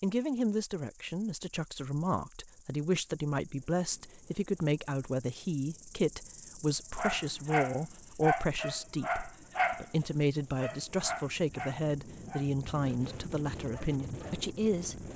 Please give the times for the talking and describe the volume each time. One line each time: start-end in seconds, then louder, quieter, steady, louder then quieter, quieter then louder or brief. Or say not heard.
0.0-15.1 steady.